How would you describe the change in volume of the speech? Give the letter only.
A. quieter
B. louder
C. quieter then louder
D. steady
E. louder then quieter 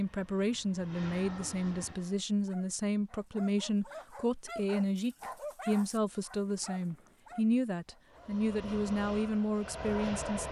D.